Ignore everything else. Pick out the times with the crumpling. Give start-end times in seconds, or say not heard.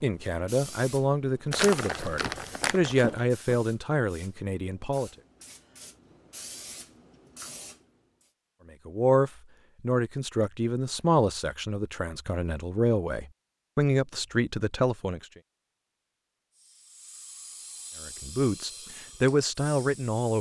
1.5-3.1.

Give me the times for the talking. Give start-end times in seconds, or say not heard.
0.0-5.1, 8.8-15.2, 18.0-20.3.